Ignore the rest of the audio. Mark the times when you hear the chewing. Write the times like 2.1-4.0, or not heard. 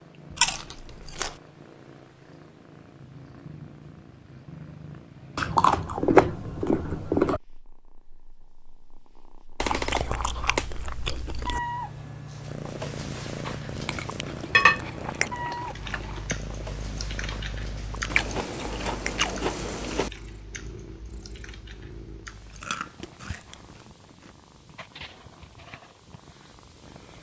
0.3-1.4, 5.3-7.4, 9.6-11.6, 13.8-16.4, 18.1-20.1, 22.5-24.4.